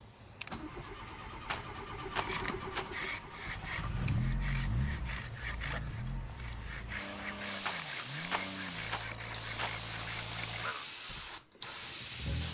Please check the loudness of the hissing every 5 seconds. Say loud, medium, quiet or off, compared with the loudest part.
quiet, loud, loud.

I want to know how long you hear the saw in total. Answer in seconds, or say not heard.
9 s.